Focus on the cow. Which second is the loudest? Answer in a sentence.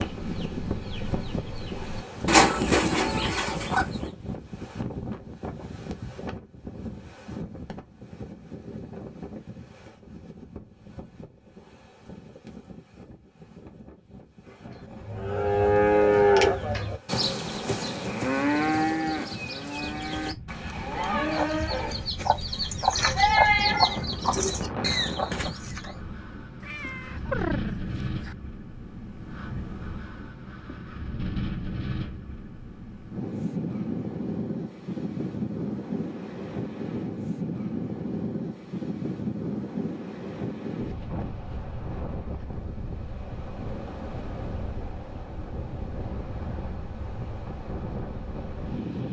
The volume of the cow peaks at 16 seconds.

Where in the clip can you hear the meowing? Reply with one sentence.
You can hear the meowing from 26.6 to 28.4 s.